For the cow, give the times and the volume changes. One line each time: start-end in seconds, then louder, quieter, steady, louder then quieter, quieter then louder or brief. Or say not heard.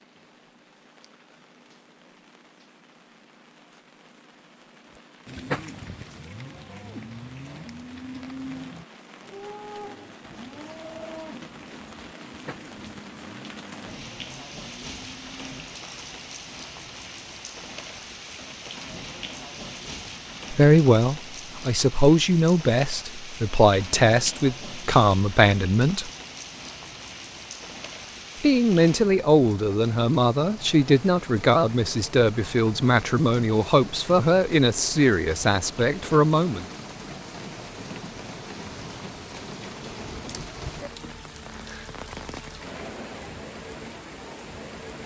4.9-15.8 quieter.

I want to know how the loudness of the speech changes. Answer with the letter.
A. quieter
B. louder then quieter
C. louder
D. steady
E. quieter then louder
D.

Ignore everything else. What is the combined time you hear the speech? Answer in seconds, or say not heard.
14 s.